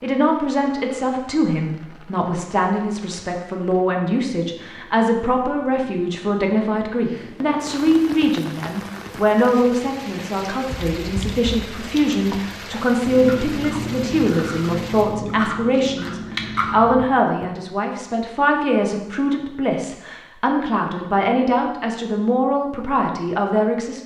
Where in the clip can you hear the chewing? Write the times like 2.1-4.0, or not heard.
10.7-17.5.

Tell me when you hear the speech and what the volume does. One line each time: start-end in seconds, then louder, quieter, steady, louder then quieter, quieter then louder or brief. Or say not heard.
0.0-24.0 steady.